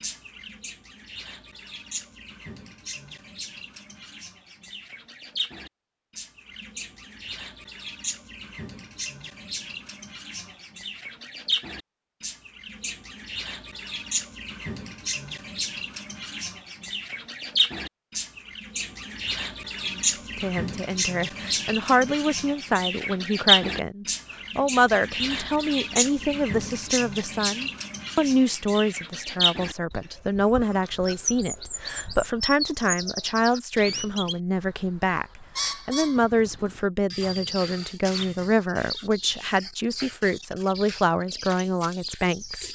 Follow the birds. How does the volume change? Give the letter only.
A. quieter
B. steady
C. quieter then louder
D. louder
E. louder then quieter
E.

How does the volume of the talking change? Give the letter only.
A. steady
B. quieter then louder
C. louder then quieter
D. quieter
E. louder
A.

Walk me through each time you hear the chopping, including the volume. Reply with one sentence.
The chopping can't be heard in this clip.